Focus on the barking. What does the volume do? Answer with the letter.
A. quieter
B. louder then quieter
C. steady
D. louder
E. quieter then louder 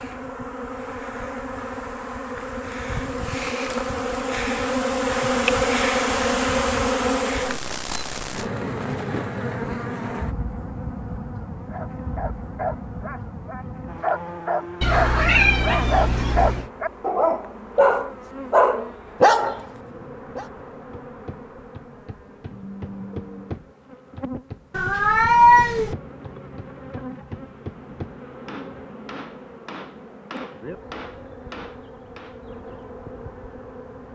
D.